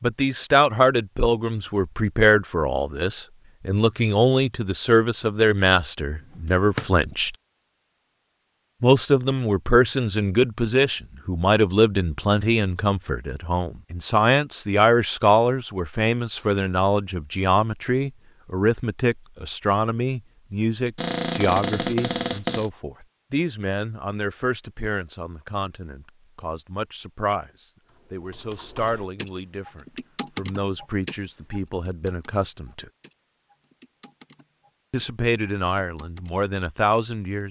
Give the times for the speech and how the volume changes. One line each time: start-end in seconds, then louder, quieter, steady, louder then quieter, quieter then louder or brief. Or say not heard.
0.0-7.3 steady
8.8-32.9 quieter
34.9-37.4 brief.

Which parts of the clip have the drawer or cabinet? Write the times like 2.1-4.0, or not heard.
6.2-6.9, 20.9-22.7.